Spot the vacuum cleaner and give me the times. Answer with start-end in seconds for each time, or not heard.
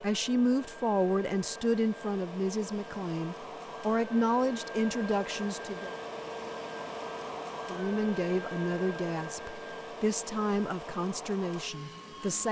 0.0-12.4.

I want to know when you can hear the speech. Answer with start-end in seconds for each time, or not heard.
0.0-5.9, 7.7-12.4.